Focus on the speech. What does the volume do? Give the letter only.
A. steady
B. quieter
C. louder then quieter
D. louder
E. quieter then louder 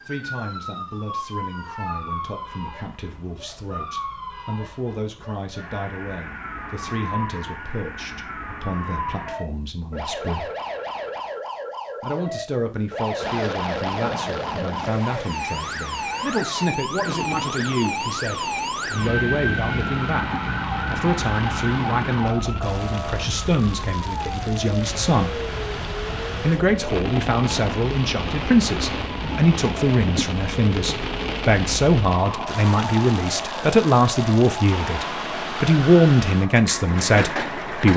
D.